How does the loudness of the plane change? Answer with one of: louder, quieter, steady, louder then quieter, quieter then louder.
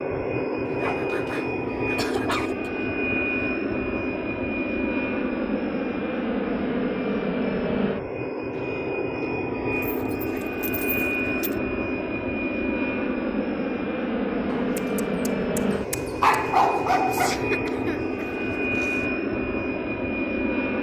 steady.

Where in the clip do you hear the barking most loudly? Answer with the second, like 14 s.
16 s.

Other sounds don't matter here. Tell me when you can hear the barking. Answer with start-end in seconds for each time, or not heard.
0.7-2.5, 9.7-11.6, 14.4-17.4.